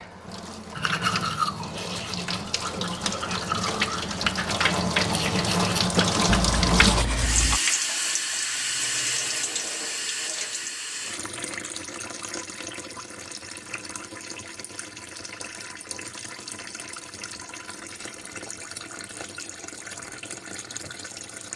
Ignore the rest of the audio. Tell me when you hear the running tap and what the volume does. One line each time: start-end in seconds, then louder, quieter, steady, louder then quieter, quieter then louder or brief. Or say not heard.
0.0-21.5 louder then quieter.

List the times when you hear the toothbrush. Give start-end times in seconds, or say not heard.
0.8-7.6.